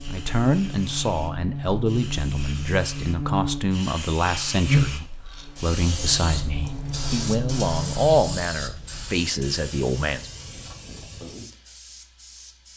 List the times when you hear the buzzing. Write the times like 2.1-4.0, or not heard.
0.0-8.4.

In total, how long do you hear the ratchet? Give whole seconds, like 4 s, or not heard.
not heard.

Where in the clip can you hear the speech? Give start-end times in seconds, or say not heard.
0.1-10.3.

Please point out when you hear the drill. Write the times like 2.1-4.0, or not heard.
not heard.